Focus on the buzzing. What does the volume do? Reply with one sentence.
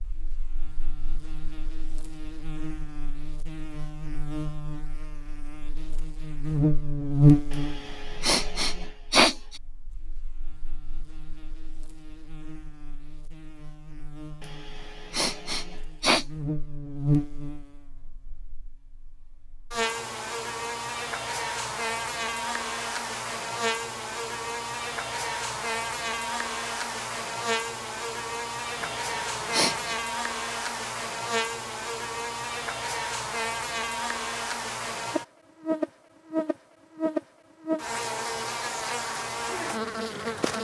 The loudness of the buzzing goes down, then up.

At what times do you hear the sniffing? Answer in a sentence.
The sniffing can be heard from 7.5 to 9.3 s, from 14.4 to 16.2 s and from 28.8 to 29.9 s.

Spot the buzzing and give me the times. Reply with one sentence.
The buzzing can be heard from 0.0 to 40.5 s.